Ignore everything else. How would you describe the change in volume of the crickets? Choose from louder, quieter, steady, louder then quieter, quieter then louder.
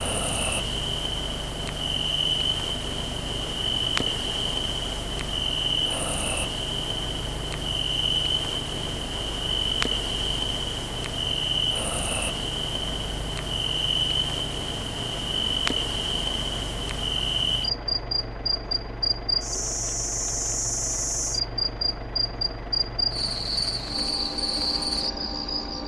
steady.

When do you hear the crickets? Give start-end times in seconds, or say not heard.
0.0-25.8.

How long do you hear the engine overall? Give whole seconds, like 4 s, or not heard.
26 s.